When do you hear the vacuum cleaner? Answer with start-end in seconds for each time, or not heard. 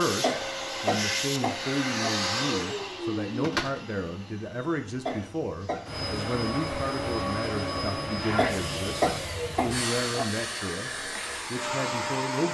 0.0-12.4.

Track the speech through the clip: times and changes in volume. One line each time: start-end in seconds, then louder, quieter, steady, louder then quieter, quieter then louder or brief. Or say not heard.
0.0-10.9 steady
11.5-12.4 brief.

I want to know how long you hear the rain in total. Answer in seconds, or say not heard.
not heard.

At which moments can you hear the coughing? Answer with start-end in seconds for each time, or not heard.
0.2-2.1, 5.0-5.9, 8.3-10.2.